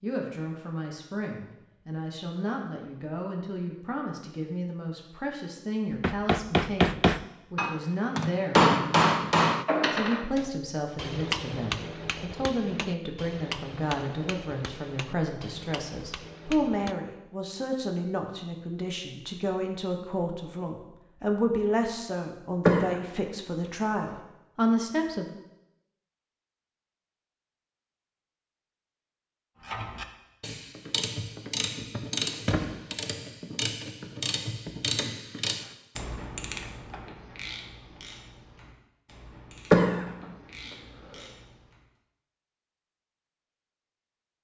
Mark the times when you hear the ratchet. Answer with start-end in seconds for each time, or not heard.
29.6-41.8.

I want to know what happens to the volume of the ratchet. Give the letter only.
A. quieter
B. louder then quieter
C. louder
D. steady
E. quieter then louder
A.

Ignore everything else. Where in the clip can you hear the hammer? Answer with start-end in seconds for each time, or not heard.
5.9-16.9.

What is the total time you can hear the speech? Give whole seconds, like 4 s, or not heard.
25 s.